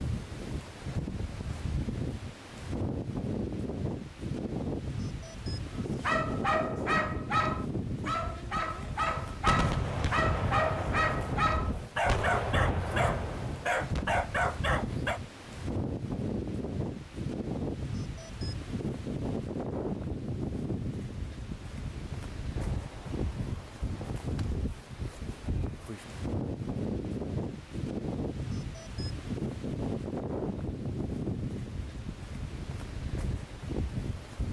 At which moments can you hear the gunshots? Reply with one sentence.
The gunshots can be heard from 9.4 to 14.1 s and from 22.6 to 24.6 s.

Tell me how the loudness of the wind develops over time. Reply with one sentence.
The volume of the wind stays about the same.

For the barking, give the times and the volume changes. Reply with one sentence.
You can hear the barking from 5.8 to 15.2 s, at a steady volume.